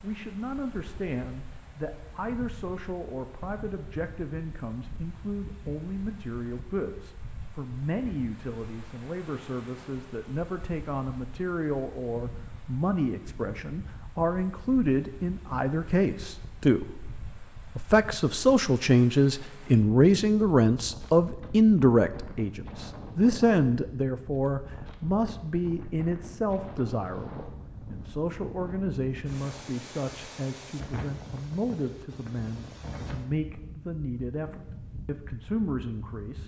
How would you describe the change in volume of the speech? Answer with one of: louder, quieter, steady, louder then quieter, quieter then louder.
louder then quieter.